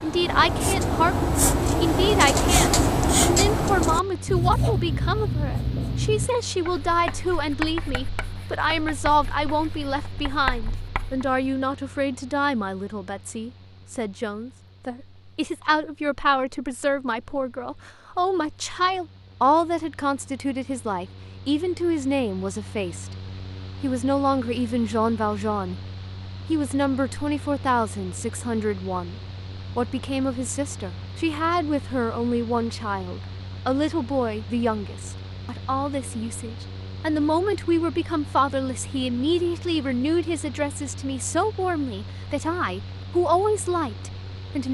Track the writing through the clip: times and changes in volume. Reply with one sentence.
You can hear the writing from 0.0 to 11.3 s, getting quieter.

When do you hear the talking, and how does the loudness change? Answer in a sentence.
The talking can be heard from 0.0 to 23.1 s, at a steady volume; briefly from 23.8 to 25.8 s; briefly from 26.5 to 29.1 s; and from 29.8 to 44.6 s, at a steady volume.